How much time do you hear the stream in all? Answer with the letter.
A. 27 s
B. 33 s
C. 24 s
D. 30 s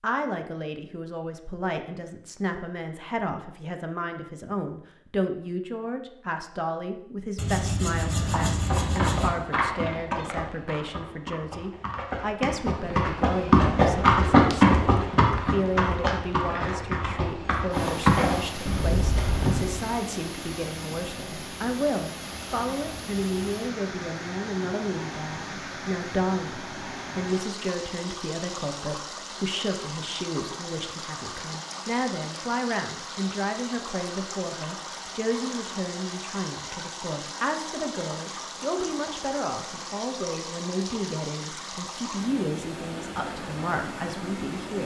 A.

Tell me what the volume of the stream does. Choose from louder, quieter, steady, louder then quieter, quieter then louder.
steady.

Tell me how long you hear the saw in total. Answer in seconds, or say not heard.
2 s.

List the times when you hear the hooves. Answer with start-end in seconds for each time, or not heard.
8.2-19.9.